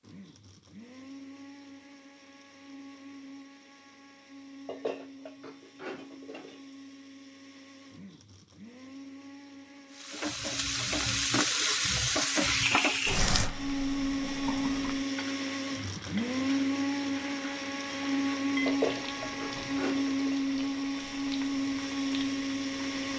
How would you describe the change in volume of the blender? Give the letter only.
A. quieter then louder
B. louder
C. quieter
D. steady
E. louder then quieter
B.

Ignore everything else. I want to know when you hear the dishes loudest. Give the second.
19 s.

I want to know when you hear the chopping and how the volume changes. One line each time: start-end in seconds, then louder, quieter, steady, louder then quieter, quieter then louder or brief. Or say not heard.
not heard.